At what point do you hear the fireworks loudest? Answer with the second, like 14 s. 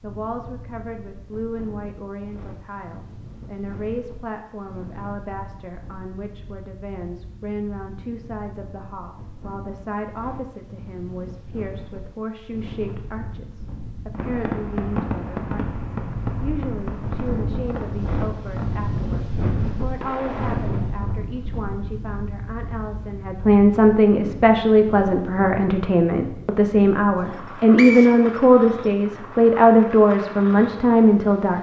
15 s.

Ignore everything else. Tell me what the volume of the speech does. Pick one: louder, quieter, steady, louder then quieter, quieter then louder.
louder.